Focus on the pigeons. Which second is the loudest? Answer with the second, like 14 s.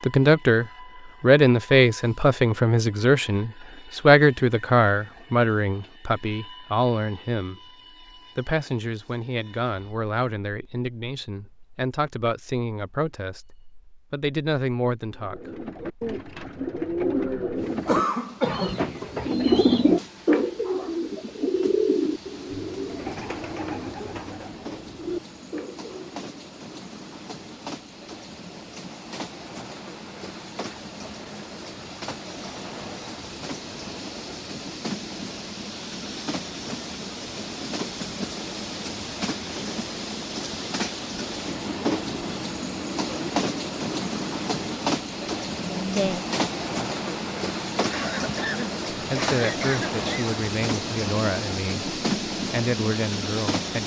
20 s.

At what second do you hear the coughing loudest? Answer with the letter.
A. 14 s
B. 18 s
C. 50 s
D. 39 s
B.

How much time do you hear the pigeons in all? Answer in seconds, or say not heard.
11 s.